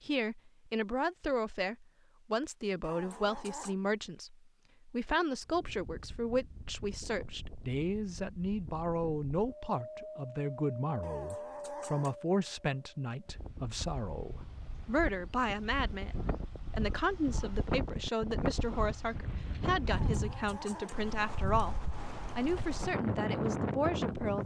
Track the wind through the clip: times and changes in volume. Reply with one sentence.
You can hear the wind from 5.4 to 24.4 s, getting louder.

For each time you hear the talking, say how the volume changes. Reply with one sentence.
The talking can be heard from 0.0 to 24.4 s, at a steady volume.